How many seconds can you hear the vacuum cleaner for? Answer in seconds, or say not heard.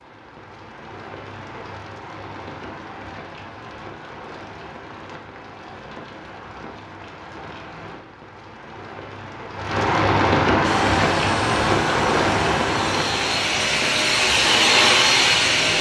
5 s.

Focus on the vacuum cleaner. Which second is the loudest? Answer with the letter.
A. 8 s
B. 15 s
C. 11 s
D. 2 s
B.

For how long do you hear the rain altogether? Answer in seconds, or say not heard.
16 s.